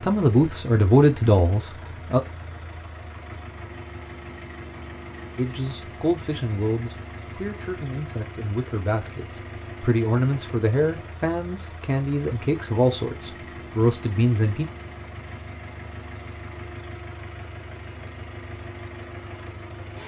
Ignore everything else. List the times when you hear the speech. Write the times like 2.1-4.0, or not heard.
0.0-2.2, 5.3-14.7.